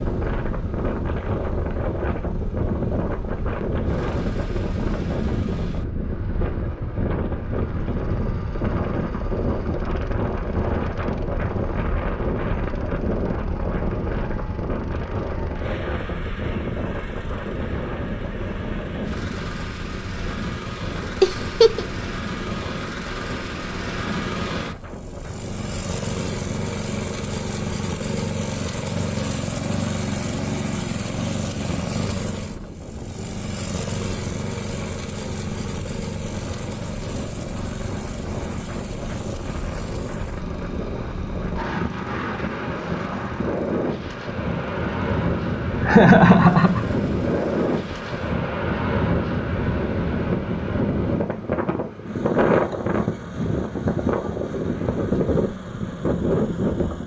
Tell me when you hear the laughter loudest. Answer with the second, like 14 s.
46 s.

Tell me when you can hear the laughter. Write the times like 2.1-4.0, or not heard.
21.2-21.9, 45.9-46.9.